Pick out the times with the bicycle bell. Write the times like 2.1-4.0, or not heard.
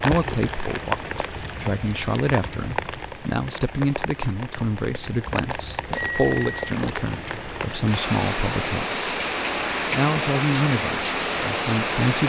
5.9-6.7.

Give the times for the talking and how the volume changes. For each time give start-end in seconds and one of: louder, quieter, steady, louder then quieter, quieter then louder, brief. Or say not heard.
0.0-8.9 steady
9.9-12.2 brief.